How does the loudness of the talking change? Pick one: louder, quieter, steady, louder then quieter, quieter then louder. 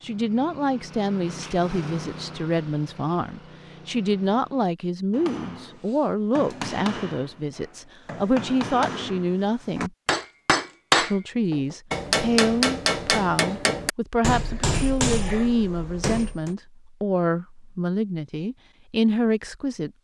steady.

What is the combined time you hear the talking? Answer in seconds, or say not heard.
19 s.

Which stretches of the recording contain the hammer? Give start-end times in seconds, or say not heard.
5.1-16.6.